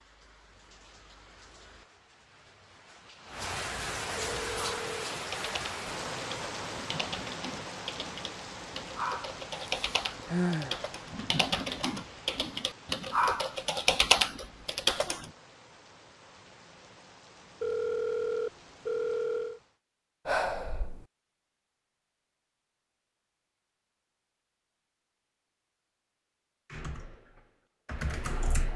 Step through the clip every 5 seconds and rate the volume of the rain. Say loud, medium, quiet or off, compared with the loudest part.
loud, loud, medium, quiet, off, off.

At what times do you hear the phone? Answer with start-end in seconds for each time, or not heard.
4.2-5.0, 17.6-19.6.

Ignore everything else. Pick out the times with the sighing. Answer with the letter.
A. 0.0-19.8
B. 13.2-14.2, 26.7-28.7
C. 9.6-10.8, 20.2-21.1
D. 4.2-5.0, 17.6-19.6
C.